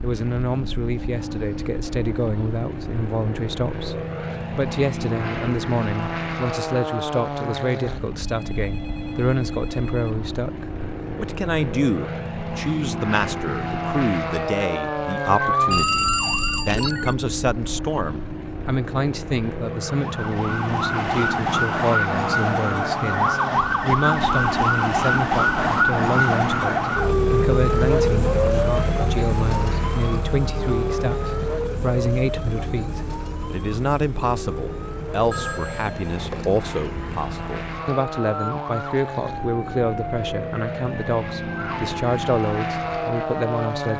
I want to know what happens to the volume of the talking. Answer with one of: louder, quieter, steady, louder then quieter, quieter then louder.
steady.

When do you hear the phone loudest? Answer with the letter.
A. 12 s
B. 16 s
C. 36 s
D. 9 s
B.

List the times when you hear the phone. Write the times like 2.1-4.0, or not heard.
8.2-10.1, 15.7-17.1, 35.3-36.5.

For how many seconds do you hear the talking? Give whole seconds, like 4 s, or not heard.
44 s.